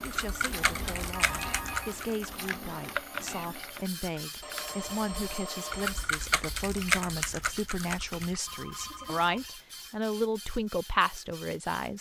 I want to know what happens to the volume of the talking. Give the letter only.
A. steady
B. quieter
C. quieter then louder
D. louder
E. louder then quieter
D.